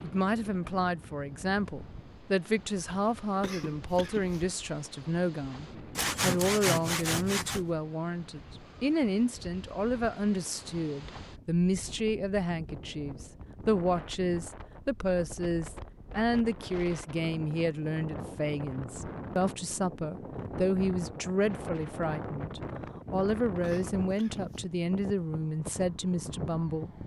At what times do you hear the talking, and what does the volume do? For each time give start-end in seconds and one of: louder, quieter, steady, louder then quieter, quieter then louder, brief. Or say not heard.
0.0-26.9 steady.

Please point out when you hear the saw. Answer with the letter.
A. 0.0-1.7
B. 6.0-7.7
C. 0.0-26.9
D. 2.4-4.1
B.